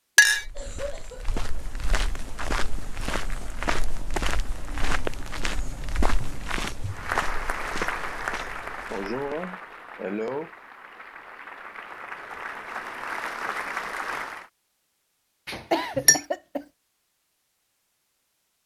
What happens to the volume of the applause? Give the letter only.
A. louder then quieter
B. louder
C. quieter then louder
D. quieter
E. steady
C.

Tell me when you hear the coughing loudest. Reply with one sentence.
The loudest moment of the coughing is at 16 seconds.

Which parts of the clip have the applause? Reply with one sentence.
The applause can be heard from 6.8 to 14.5 s.